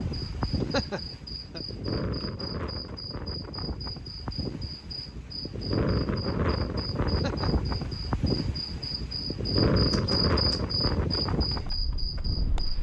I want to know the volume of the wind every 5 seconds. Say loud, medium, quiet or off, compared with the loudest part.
medium, loud, loud.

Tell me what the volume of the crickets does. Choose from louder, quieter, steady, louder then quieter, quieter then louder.
louder.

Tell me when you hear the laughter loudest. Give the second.
1 s.